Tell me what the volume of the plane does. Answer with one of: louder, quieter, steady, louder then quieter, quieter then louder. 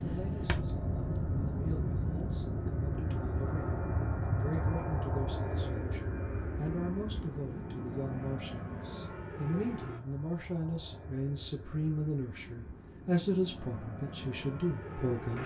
quieter.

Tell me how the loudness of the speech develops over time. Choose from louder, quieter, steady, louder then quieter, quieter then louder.
louder.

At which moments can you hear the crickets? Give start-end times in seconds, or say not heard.
not heard.